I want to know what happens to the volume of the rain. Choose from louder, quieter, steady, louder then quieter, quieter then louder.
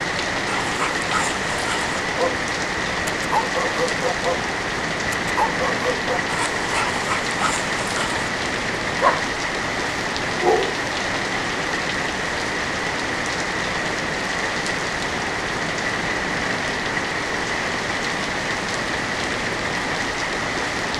steady.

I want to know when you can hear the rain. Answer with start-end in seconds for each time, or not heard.
0.0-20.9.